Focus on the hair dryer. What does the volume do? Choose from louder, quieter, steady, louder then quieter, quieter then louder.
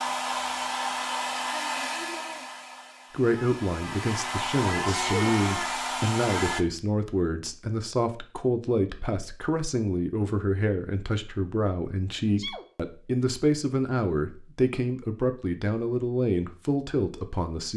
quieter then louder.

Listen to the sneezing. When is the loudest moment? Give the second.
5 s.